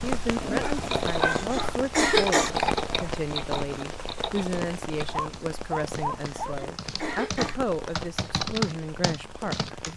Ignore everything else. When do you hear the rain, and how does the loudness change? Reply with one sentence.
You can hear the rain from 0.0 to 9.9 s, getting quieter.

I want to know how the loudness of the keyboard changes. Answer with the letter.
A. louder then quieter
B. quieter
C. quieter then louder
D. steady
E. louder
C.